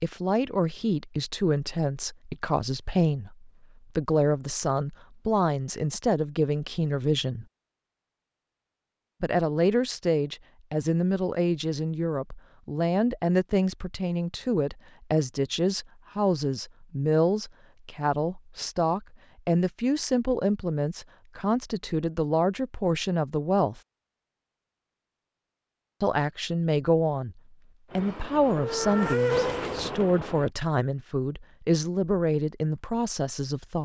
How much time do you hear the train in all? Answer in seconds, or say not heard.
3 s.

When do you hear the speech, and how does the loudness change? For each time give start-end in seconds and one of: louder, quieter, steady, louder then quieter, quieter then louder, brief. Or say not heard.
0.0-7.5 steady
9.2-23.8 steady
26.0-33.7 steady.